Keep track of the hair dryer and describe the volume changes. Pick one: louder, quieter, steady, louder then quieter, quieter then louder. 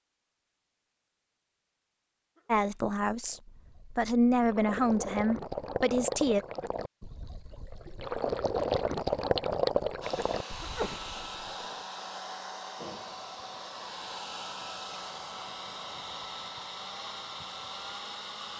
steady.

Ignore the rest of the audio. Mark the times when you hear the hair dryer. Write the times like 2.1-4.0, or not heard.
10.0-18.5.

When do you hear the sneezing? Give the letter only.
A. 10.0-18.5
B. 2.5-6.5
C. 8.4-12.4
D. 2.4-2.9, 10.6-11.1
D.